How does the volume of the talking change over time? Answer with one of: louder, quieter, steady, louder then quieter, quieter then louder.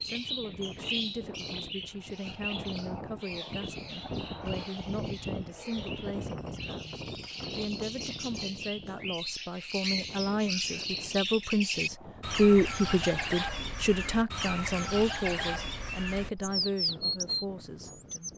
louder then quieter.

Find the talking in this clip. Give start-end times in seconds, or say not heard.
0.1-18.3.